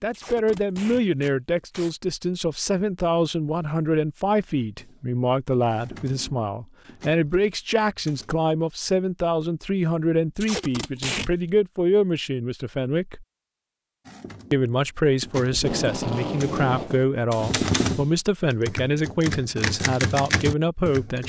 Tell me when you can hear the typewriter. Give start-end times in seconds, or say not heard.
4.8-8.4, 14.1-21.2.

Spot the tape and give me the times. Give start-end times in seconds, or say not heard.
0.1-1.9, 10.3-11.3, 15.5-17.1.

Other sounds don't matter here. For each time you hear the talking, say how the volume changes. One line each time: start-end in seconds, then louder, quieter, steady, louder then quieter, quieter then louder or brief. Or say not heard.
0.0-13.2 steady
14.5-21.2 steady.